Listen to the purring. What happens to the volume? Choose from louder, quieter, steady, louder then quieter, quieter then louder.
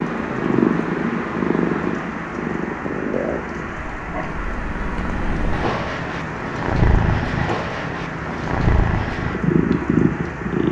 quieter then louder.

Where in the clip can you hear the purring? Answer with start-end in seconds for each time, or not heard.
0.0-10.6.